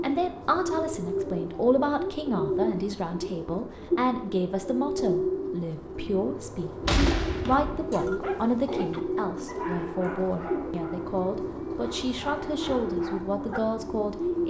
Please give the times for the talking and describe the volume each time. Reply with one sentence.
You can hear the talking from 0.0 to 14.4 s, at a steady volume.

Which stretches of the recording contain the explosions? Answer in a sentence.
You can hear the explosions from 6.8 to 8.1 s.